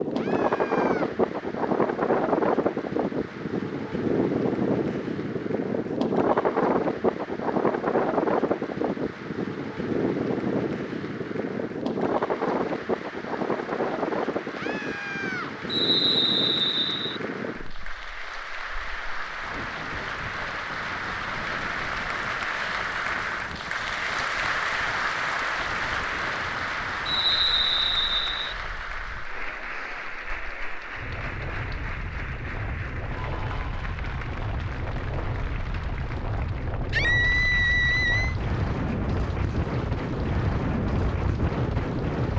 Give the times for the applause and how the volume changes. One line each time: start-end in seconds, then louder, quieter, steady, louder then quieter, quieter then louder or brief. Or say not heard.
0.0-42.3 louder then quieter.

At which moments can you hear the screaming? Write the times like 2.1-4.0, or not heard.
0.1-1.1, 14.5-15.5, 36.9-38.4.